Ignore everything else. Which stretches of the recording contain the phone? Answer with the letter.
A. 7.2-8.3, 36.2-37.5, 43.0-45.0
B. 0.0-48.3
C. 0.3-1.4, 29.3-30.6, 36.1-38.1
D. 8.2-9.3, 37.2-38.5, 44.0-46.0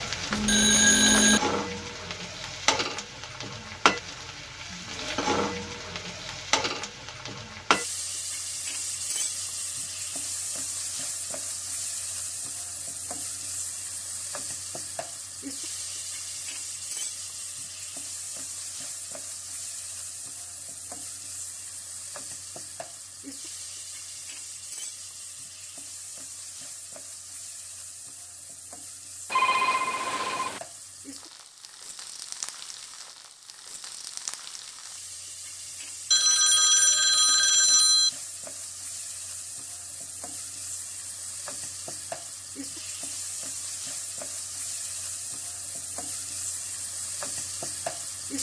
C.